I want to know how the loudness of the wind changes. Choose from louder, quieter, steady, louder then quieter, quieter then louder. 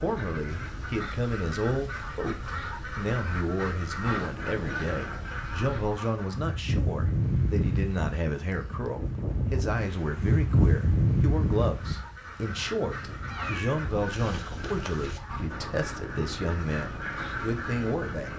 louder then quieter.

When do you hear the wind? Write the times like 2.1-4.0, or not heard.
0.0-18.3.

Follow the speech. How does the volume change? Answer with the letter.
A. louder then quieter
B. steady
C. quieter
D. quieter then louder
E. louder
B.